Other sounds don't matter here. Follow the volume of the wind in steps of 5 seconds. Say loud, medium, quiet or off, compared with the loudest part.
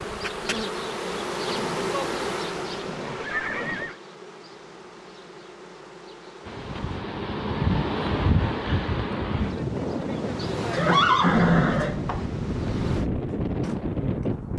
off, loud, loud.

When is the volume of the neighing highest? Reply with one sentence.
The volume of the neighing peaks at 11 seconds.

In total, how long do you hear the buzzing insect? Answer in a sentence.
You can hear the buzzing insect for 11 seconds altogether.